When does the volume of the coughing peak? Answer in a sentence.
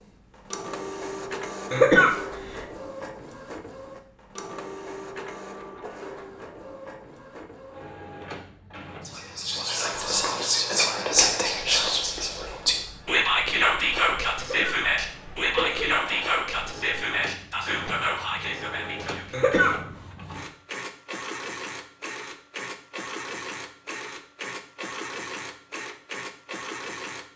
The loudest moment of the coughing is at 2 seconds.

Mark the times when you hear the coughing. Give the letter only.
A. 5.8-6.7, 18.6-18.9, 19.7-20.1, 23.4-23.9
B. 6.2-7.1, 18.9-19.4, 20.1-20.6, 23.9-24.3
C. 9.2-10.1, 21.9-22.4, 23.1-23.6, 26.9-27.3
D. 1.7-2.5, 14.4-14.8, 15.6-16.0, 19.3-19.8
D.